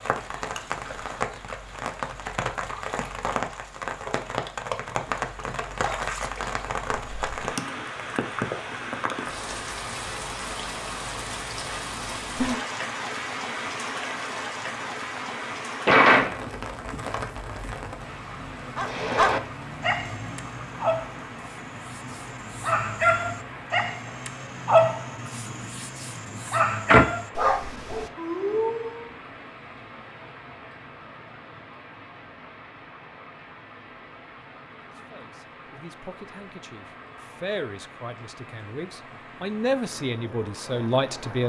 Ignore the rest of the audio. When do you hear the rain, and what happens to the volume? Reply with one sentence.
You can hear the rain from 0.0 to 41.4 s, getting quieter.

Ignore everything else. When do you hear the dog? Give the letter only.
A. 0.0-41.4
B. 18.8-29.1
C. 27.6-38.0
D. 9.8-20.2
B.